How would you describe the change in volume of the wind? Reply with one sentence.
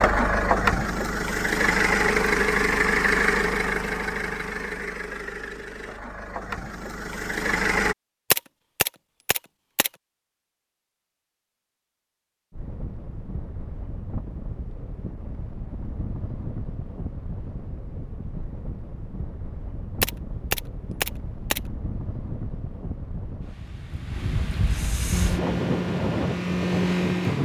The loudness of the wind goes up.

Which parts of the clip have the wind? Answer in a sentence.
You can hear the wind from 12.5 to 27.3 s.